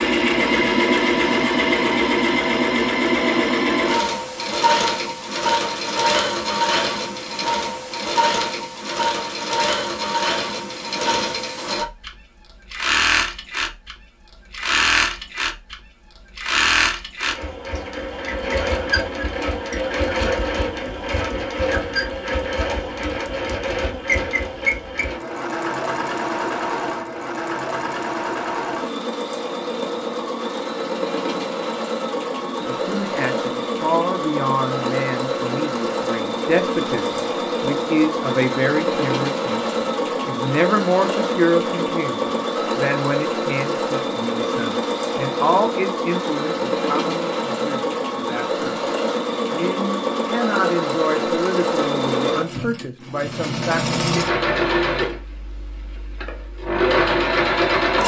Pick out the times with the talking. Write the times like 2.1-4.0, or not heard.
32.5-48.9, 49.5-54.0.